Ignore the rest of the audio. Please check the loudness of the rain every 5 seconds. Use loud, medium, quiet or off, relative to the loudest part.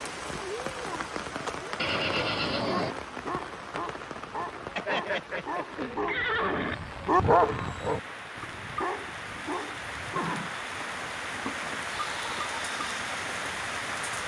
loud, medium, loud.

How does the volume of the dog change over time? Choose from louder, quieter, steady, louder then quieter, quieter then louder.
louder then quieter.